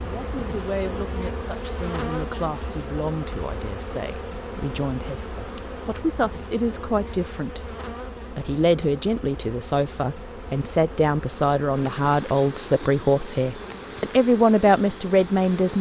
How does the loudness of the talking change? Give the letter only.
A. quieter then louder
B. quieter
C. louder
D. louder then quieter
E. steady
C.